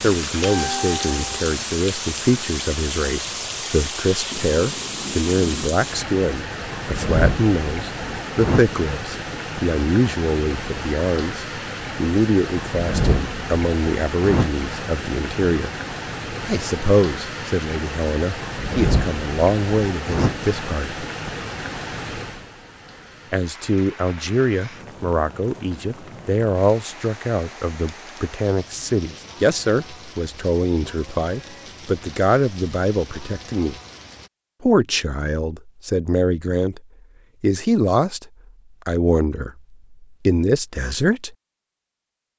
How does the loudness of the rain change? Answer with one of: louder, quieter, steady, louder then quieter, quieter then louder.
quieter.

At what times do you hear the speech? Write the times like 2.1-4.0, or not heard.
0.0-15.7, 16.4-21.1, 23.3-33.8, 34.6-36.8, 37.4-41.4.